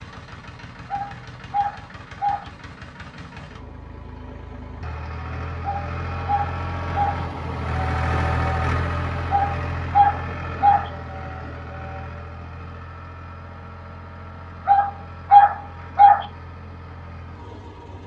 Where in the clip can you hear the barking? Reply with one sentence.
You can hear the barking from 0.9 to 2.5 s, from 5.7 to 7.2 s, from 9.3 to 10.9 s and from 14.7 to 16.2 s.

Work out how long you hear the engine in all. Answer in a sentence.
You can hear the engine for 18 seconds altogether.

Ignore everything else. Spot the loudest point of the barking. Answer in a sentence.
The loudest moment of the barking is at 15 seconds.